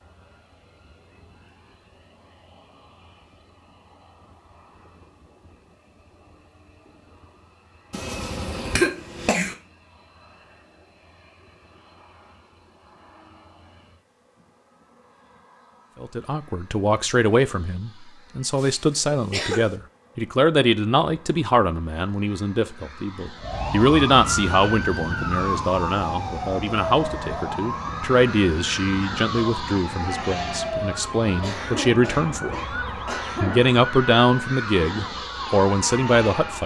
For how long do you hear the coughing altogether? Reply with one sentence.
The coughing can be heard for 5 seconds in total.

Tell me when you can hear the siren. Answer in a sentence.
The siren can be heard from 23.4 to 36.6 s.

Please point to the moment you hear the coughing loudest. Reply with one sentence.
The volume of the coughing peaks at 9 seconds.